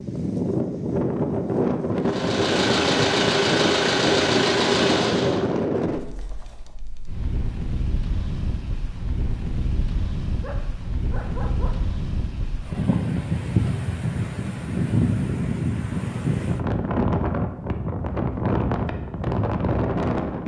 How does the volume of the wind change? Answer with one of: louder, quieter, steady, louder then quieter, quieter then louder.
quieter then louder.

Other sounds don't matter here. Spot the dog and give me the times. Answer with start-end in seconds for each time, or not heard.
10.4-11.8.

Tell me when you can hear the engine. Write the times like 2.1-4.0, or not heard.
2.0-5.4.